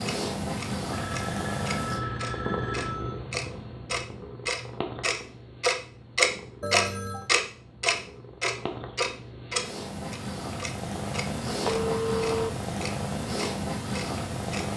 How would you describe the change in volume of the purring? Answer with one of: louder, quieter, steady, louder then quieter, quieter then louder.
quieter then louder.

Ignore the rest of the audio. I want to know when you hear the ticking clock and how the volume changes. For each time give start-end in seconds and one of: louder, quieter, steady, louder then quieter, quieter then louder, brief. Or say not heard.
0.0-14.7 louder then quieter.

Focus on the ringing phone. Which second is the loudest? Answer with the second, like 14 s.
12 s.